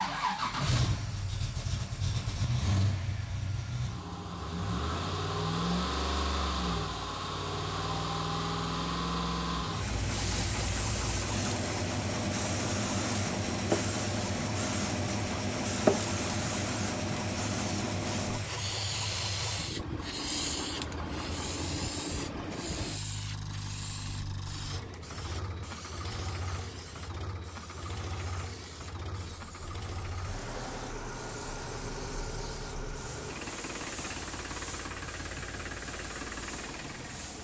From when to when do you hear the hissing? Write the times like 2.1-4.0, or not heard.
9.7-37.3.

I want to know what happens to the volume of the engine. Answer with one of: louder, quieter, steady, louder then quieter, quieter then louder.
quieter.